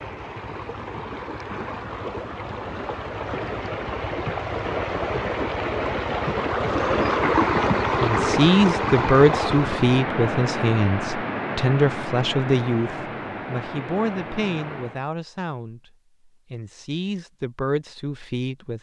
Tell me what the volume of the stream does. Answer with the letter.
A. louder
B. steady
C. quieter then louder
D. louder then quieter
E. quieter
D.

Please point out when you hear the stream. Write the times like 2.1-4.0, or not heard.
0.0-15.1.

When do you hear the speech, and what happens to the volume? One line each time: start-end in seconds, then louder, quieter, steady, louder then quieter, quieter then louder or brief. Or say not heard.
8.0-18.7 quieter.